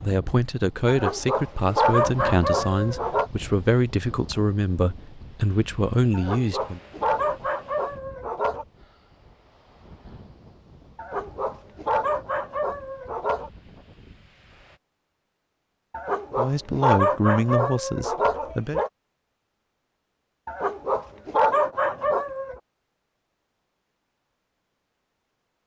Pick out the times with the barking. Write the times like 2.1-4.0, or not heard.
0.8-3.3, 6.1-8.7, 10.9-13.5, 15.9-18.9, 20.4-22.6.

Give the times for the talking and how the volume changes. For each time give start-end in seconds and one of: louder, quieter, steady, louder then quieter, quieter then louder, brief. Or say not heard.
0.0-6.8 steady
16.4-18.8 brief.